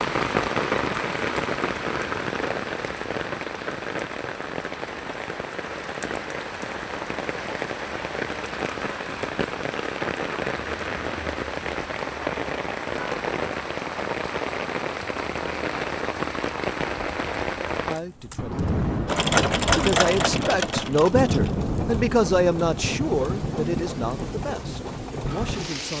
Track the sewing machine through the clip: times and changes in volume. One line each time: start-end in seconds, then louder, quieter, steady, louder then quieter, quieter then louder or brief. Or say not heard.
19.1-25.9 quieter.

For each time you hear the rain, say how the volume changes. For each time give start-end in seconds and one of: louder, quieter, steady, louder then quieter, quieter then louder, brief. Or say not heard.
0.0-25.9 steady.